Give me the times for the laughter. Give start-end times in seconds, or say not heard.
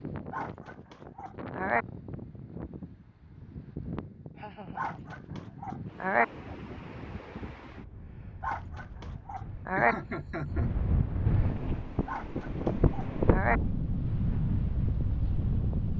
4.3-5.2, 9.8-10.7.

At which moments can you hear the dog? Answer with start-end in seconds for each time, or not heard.
0.3-1.9, 4.8-6.2, 8.4-9.9, 12.1-13.6.